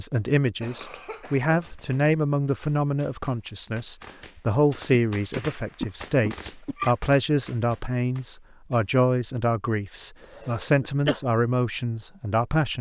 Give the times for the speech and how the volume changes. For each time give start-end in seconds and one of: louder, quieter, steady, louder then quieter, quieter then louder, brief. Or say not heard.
0.0-12.7 steady.